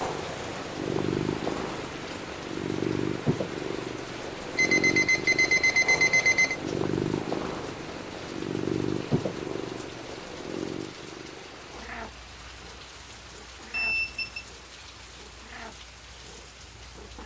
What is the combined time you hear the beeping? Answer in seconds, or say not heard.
3 s.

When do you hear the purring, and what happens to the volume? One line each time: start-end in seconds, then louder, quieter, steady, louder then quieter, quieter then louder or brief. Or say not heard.
0.0-17.2 quieter.